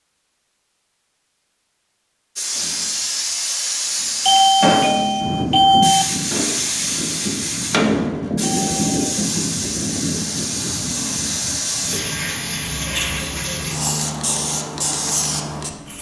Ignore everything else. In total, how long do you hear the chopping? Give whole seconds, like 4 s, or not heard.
not heard.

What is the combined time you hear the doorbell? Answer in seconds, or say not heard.
3 s.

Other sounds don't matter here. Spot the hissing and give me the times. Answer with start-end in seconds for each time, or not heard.
2.4-15.9.